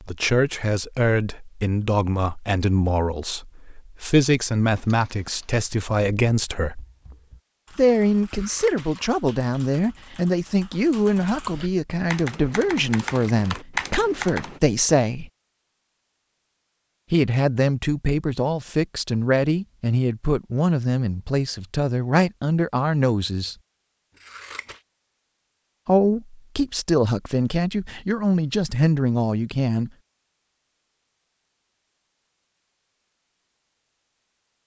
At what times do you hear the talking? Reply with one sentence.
The talking can be heard from 0.0 to 6.8 s, from 7.8 to 15.3 s, from 17.1 to 23.6 s and from 25.9 to 29.9 s.